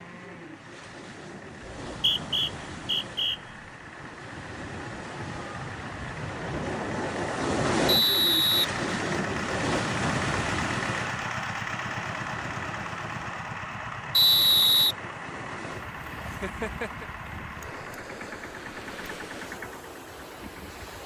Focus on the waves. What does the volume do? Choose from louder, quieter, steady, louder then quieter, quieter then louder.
louder then quieter.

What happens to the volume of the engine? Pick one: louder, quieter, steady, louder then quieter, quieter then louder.
louder then quieter.